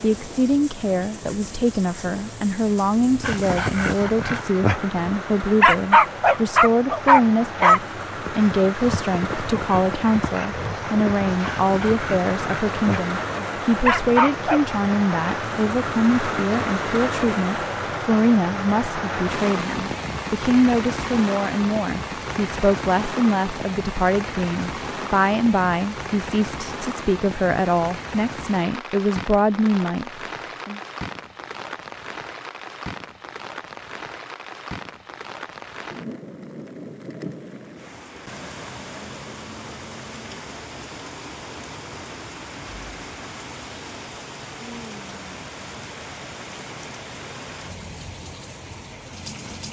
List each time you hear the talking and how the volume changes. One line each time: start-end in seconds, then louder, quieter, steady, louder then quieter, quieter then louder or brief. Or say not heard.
0.0-30.8 steady.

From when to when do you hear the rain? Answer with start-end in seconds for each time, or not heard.
0.0-49.6.